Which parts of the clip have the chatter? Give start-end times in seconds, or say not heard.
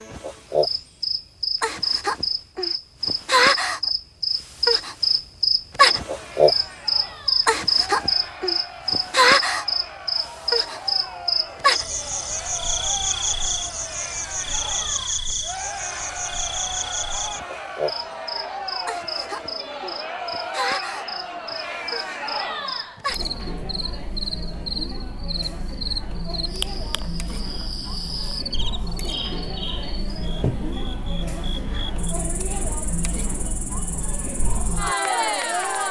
6.0-35.8.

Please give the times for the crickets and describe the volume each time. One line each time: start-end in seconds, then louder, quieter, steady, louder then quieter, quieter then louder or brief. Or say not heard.
0.0-35.8 quieter.